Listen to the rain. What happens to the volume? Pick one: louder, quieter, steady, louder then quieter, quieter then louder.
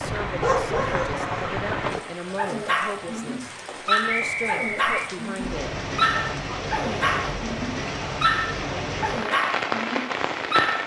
quieter then louder.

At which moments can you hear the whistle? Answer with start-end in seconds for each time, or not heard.
4.1-5.0.